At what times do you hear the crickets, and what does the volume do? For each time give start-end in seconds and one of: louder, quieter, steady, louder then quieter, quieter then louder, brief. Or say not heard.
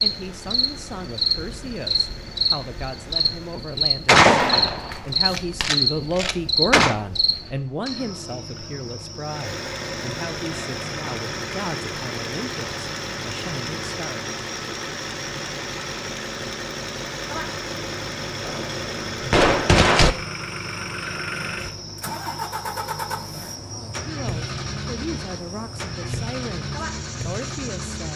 0.0-28.1 quieter.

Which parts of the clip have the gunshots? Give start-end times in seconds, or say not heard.
4.0-7.0, 18.4-20.1.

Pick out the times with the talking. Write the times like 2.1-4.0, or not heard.
0.0-14.3, 23.7-28.1.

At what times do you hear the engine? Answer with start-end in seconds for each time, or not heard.
0.0-3.7, 9.2-28.1.